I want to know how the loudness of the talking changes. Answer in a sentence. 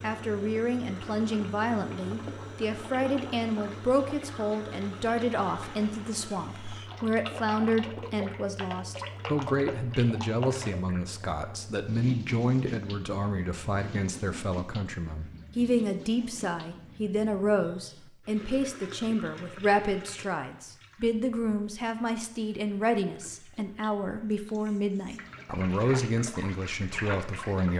The loudness of the talking stays about the same.